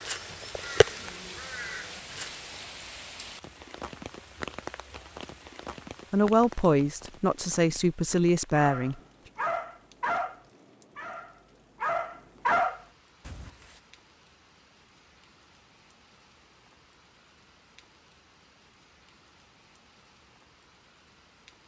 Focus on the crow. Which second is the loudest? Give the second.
1 s.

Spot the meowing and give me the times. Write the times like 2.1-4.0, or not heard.
not heard.